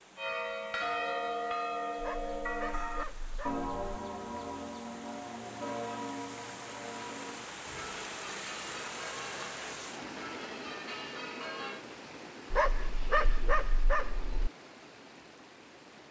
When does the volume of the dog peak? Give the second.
13 s.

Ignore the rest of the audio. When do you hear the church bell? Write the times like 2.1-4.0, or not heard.
0.1-11.8.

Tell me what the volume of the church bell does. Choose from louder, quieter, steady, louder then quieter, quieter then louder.
quieter.